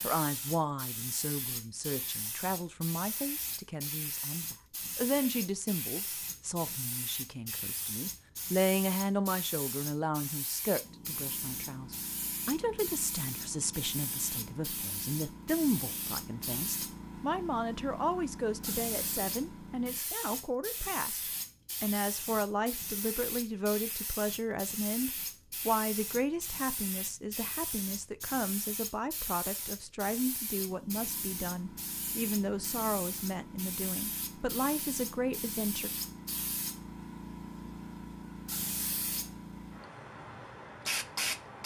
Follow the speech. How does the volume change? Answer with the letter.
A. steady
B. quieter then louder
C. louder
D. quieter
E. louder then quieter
A.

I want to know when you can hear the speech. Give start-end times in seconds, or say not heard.
0.0-35.9.